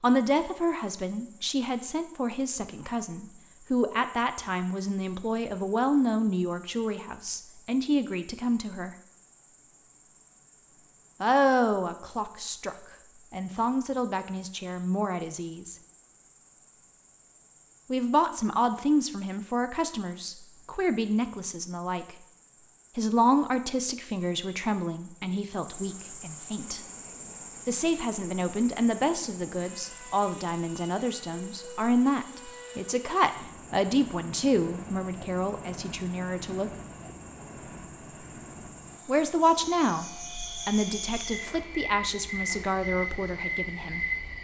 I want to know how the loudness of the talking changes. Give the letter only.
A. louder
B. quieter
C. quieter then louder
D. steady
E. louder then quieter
D.